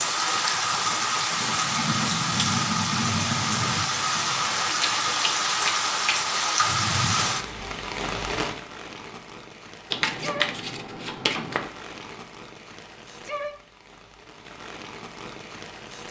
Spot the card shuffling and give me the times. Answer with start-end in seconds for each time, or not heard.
4.6-6.5, 9.9-11.7.